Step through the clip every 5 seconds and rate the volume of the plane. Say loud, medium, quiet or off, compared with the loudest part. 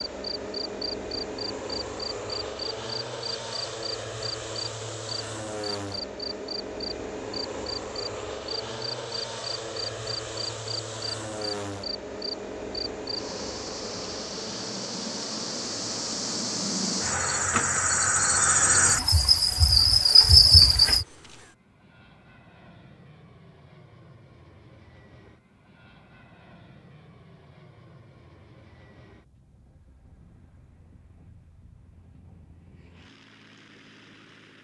loud, loud, loud, medium, quiet, quiet, quiet.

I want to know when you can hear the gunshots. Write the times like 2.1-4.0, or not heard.
not heard.